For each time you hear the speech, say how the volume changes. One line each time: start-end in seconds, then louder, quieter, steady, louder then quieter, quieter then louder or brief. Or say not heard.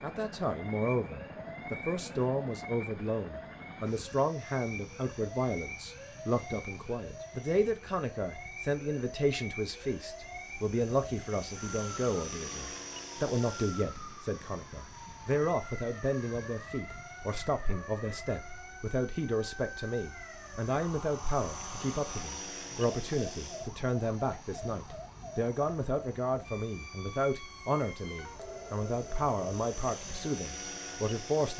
0.0-31.5 steady.